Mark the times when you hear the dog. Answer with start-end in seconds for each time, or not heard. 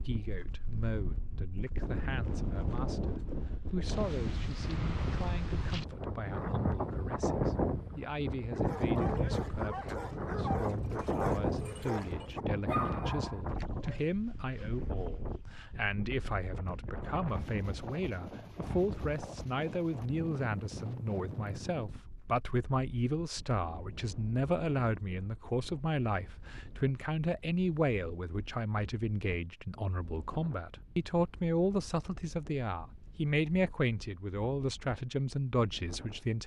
8.5-14.1.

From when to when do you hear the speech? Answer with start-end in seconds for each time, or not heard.
0.0-36.4.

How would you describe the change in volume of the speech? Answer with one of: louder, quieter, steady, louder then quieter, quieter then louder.
louder.